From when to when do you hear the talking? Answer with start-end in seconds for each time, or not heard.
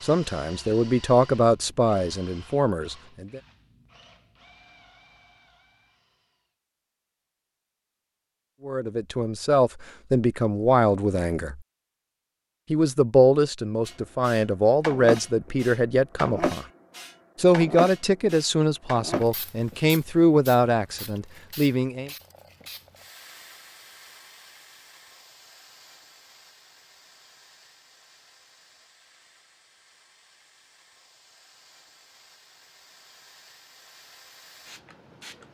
0.0-3.4, 8.7-11.6, 12.7-16.6, 17.4-22.1.